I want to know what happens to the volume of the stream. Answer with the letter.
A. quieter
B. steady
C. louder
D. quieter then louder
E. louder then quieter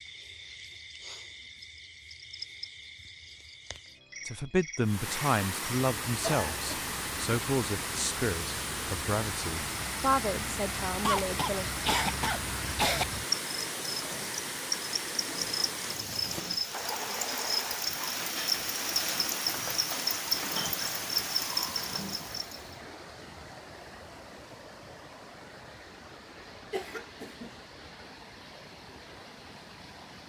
A.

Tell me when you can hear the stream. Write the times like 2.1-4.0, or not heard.
4.8-30.2.